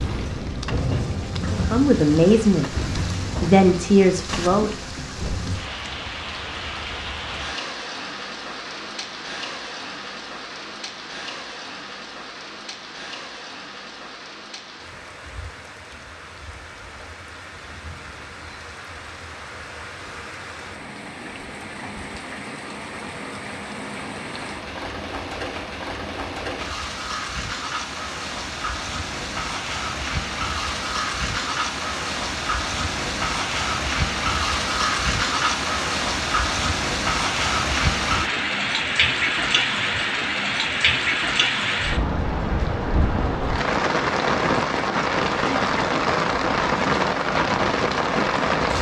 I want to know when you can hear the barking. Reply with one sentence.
The barking can't be heard in this clip.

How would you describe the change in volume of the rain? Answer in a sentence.
The loudness of the rain goes down, then up.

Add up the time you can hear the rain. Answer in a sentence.
You can hear the rain for 49 seconds altogether.